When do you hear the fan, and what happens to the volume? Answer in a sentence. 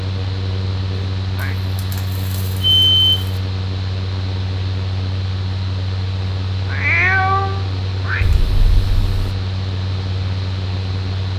You can hear the fan from 0.0 to 11.3 s, at a steady volume.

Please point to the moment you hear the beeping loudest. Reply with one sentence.
The volume of the beeping peaks at 3 seconds.